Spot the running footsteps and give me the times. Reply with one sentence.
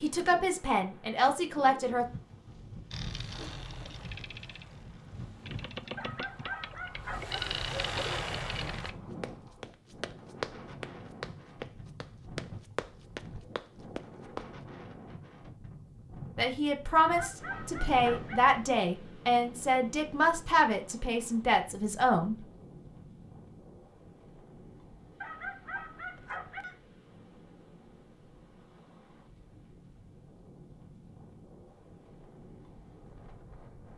You can hear the running footsteps from 8.8 to 14.5 s.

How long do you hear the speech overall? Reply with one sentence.
You can hear the speech for 8 seconds altogether.